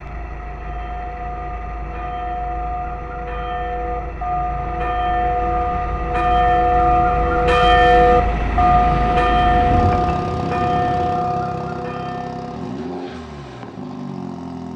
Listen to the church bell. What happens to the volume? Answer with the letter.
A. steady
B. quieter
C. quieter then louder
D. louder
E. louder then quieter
E.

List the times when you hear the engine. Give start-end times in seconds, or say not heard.
0.0-14.7.